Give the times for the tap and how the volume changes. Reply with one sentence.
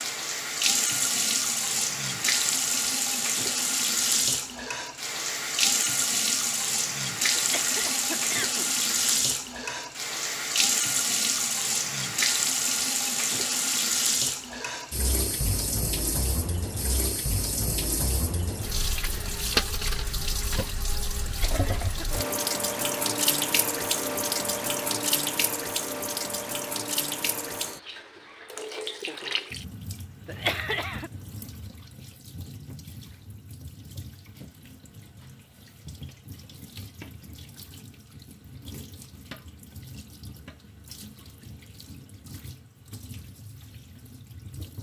You can hear the tap from 0.0 to 44.7 s, getting quieter.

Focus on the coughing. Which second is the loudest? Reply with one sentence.
The volume of the coughing peaks at 31 seconds.